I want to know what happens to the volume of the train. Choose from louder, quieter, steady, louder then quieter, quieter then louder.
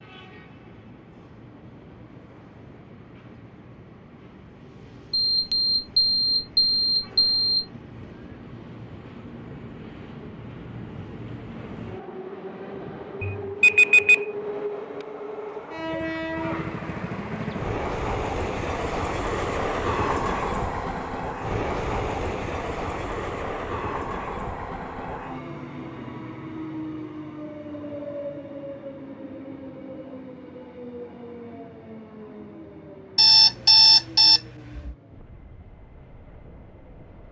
louder then quieter.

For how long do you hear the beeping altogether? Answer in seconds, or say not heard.
5 s.